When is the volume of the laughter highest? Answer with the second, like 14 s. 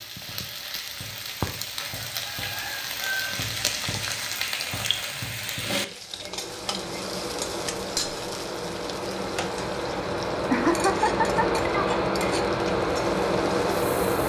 11 s.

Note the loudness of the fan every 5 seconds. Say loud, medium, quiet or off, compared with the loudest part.
off, medium, loud.